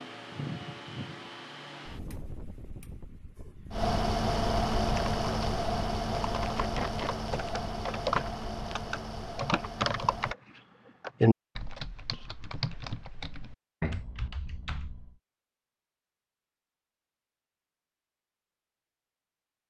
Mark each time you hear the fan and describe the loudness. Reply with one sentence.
You can hear the fan from 0.0 to 10.3 s, getting louder then quieter.